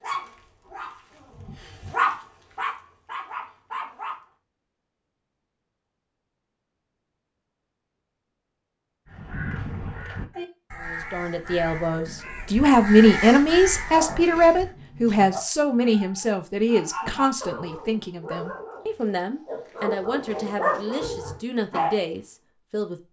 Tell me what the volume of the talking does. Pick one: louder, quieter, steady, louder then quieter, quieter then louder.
quieter.